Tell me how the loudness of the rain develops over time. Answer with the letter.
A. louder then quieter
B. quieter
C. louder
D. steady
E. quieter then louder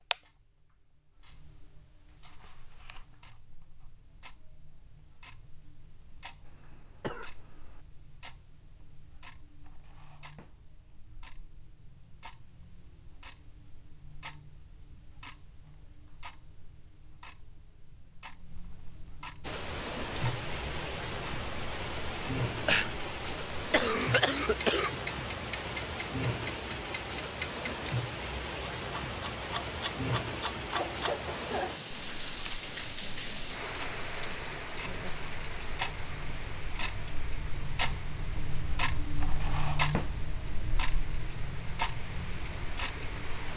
B.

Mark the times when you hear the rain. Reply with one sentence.
You can hear the rain from 19.4 to 43.5 s.